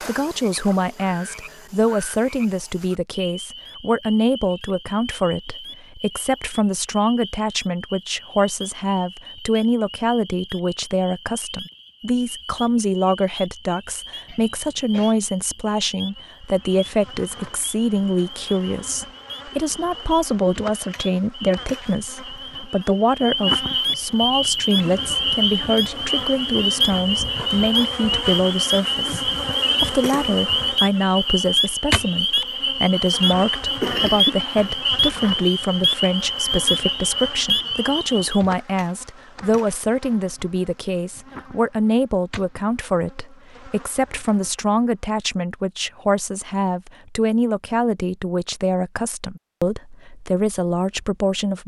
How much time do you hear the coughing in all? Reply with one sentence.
The coughing can be heard for 2 seconds in total.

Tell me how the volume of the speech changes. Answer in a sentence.
The loudness of the speech stays about the same.